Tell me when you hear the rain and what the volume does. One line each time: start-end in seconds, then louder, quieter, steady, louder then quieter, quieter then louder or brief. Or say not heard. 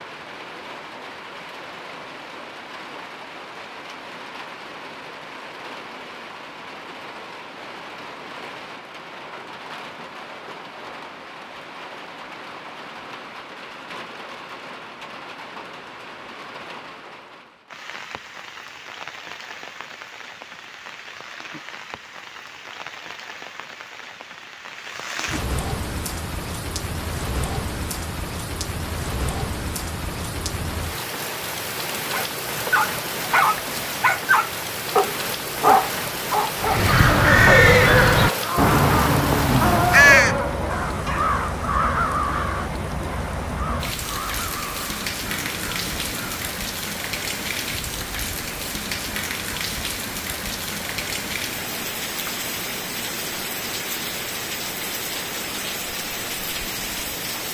0.0-57.4 louder.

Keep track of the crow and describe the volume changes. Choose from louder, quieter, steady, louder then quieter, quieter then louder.
quieter.